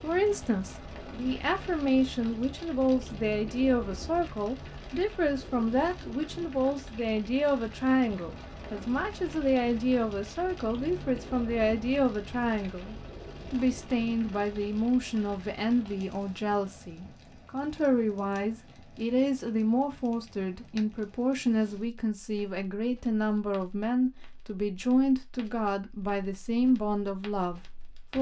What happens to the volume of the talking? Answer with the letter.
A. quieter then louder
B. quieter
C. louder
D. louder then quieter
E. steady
E.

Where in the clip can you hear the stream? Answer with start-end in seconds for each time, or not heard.
not heard.